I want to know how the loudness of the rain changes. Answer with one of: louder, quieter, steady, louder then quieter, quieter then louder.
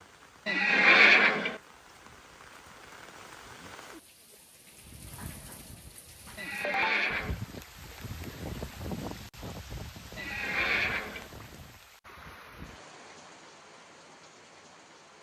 louder then quieter.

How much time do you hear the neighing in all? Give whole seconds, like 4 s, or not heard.
3 s.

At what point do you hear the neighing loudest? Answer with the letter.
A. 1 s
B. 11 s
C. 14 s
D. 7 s
A.